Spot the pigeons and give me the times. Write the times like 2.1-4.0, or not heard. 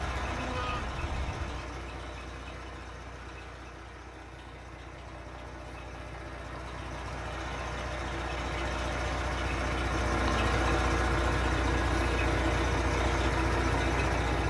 not heard.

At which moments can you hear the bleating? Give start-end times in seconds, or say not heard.
0.0-1.6.